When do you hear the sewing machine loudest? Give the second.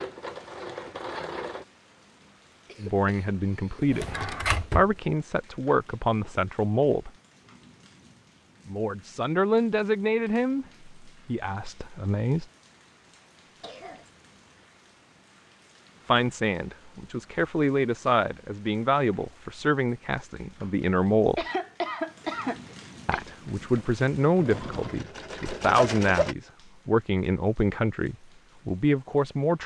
26 s.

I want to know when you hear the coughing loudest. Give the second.
22 s.